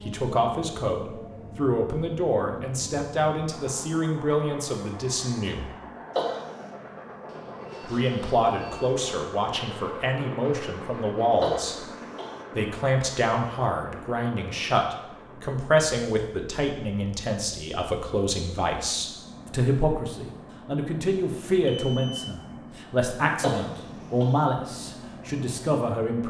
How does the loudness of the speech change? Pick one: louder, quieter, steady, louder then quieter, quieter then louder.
steady.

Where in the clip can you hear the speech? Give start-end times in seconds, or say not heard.
0.0-5.7, 7.8-11.8, 12.6-26.2.